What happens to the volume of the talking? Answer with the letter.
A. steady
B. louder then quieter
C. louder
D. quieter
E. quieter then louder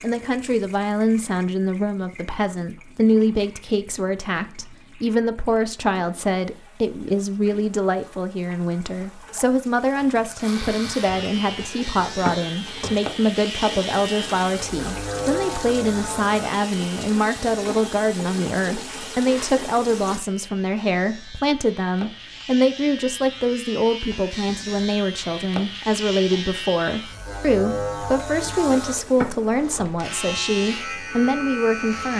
A.